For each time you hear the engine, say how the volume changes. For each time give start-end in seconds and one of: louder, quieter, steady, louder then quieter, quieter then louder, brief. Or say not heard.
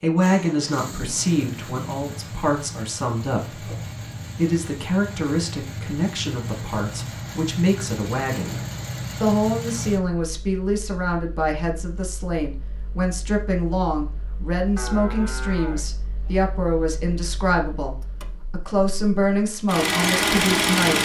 0.1-21.0 quieter then louder.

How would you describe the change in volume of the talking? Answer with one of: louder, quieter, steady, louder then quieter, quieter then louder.
steady.